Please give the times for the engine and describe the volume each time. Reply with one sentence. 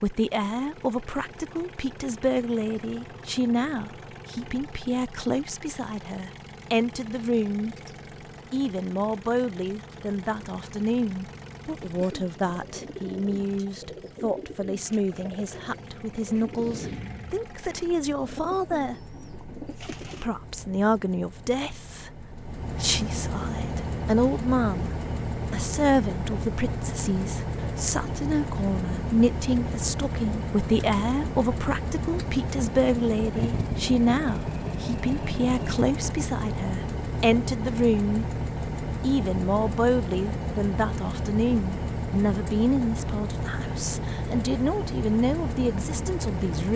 The engine can be heard from 0.0 to 46.7 s, getting louder.